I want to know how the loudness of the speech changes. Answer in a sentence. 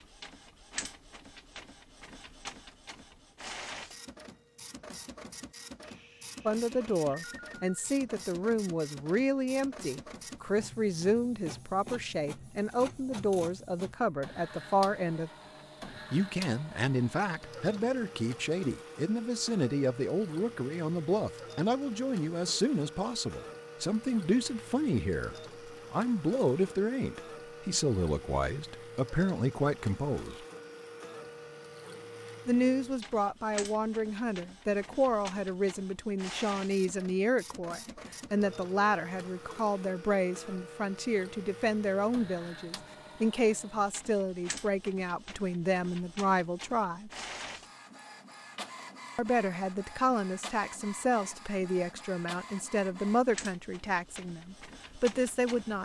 The volume of the speech stays about the same.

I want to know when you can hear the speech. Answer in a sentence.
The speech can be heard from 6.5 to 15.3 s, from 16.1 to 30.4 s, from 32.5 to 47.1 s and from 49.1 to 55.8 s.